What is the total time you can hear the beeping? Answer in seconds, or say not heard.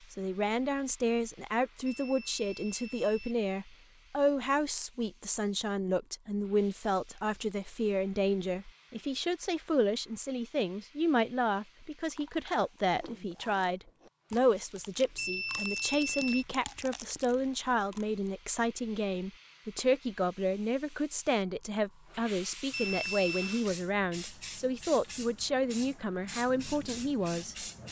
4 s.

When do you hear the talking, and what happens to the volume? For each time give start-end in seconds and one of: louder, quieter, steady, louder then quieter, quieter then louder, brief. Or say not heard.
0.1-27.6 steady.